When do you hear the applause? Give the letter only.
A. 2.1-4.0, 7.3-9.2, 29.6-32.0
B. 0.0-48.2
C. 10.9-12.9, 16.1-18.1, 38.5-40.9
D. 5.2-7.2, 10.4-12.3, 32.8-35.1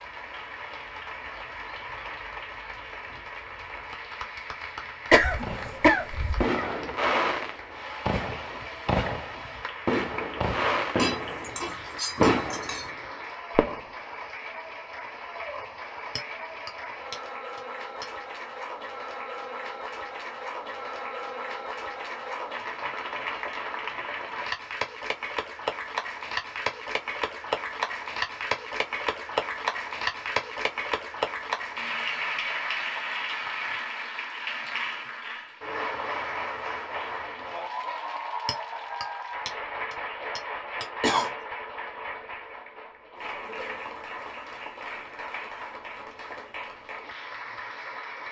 B.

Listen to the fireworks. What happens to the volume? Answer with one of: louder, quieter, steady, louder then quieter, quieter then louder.
quieter then louder.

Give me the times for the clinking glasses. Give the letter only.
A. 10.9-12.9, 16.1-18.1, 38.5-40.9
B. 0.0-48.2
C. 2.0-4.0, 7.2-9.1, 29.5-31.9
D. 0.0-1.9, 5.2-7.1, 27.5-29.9
A.